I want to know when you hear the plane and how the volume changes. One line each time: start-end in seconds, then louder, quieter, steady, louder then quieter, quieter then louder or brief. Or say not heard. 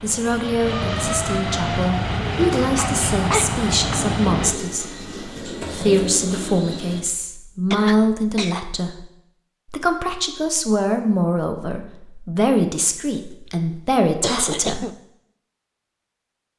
0.0-4.6 steady.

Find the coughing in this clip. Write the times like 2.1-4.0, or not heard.
2.8-4.0, 7.7-8.6, 14.2-14.9.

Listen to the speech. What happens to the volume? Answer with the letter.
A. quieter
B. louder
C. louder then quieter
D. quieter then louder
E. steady
E.